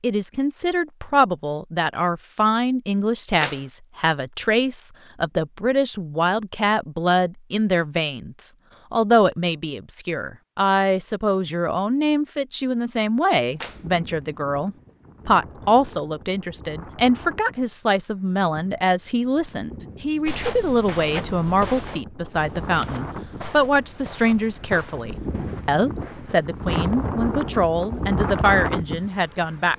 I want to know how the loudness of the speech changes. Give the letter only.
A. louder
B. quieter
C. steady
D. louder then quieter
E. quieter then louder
C.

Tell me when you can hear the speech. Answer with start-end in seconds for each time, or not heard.
0.0-29.7.